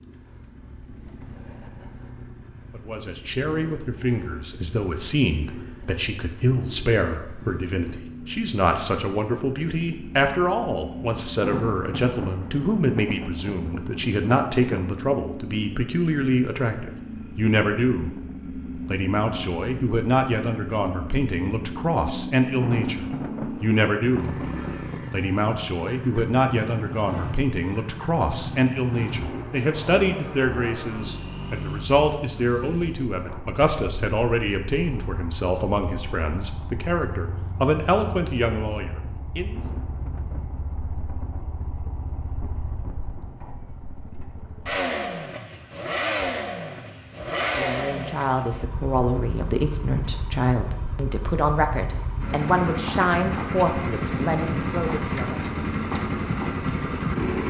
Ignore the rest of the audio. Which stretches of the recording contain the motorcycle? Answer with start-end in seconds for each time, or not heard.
0.0-57.4.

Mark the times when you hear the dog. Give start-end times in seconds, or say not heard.
not heard.